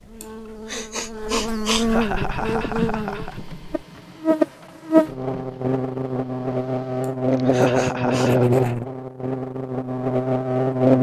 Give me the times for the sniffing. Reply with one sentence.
The sniffing can be heard from 0.2 to 1.9 s and from 7.0 to 8.3 s.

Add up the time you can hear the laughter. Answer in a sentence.
The laughter can be heard for 3 seconds in total.